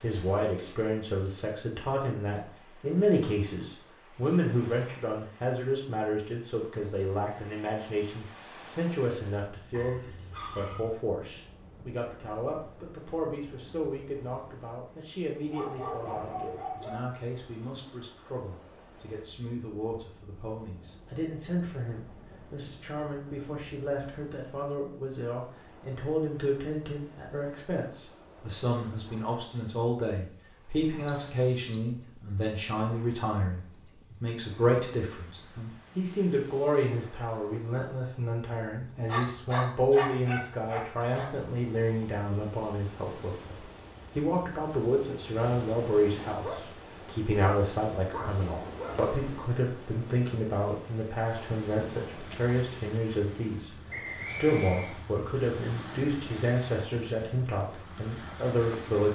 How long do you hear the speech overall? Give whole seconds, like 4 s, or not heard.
59 s.